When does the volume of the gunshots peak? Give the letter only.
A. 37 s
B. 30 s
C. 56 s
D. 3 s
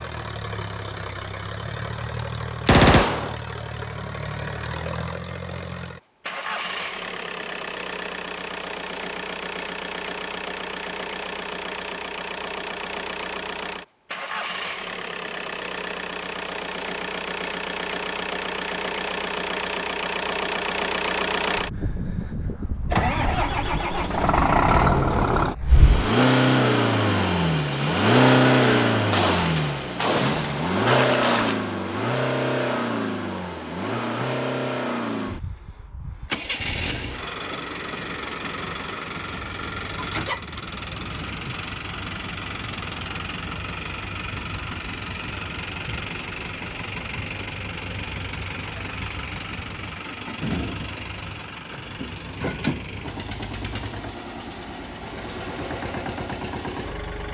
D.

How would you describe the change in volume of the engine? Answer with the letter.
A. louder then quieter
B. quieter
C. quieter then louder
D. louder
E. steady
A.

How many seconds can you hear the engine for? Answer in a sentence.
The engine can be heard for 57 seconds in total.